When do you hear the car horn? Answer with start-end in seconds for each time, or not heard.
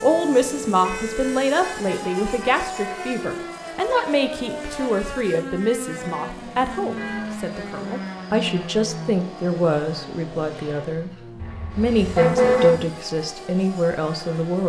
0.8-3.1, 7.0-7.5, 11.3-12.8.